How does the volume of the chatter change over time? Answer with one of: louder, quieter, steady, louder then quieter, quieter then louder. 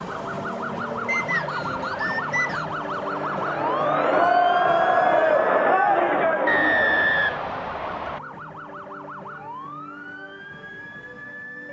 louder.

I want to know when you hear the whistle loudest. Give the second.
7 s.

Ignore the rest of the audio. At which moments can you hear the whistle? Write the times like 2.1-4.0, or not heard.
1.1-2.6, 6.5-8.2.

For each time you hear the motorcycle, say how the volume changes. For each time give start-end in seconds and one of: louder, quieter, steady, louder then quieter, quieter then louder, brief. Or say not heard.
not heard.